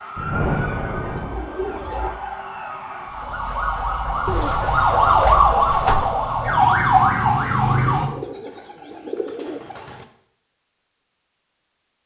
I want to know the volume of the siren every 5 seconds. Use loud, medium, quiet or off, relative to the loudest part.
medium, loud, off.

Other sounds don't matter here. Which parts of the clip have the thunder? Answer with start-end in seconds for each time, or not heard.
0.1-1.4.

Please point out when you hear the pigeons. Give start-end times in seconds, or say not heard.
0.9-2.1, 4.2-6.1, 8.1-10.1.